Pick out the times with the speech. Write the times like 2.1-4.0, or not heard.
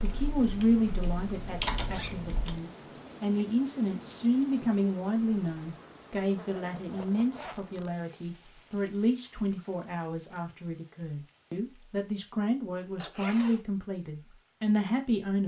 0.0-15.4.